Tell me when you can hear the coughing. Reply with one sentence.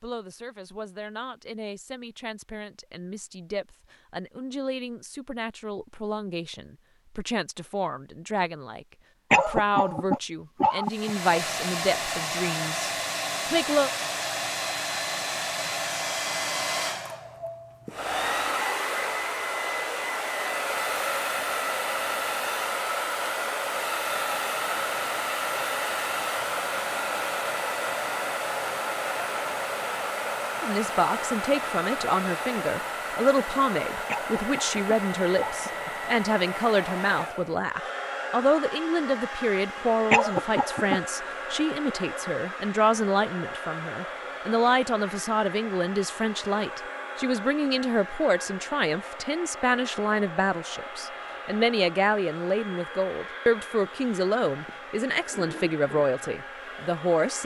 You can hear the coughing from 9.3 to 11.1 s, from 34.0 to 35.9 s and from 40.1 to 41.0 s.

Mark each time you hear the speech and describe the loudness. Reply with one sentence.
The speech can be heard from 0.0 to 13.9 s, getting louder; and from 30.6 to 57.4 s, at a steady volume.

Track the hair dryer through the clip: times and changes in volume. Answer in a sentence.
The hair dryer can be heard from 10.8 to 57.4 s, getting quieter.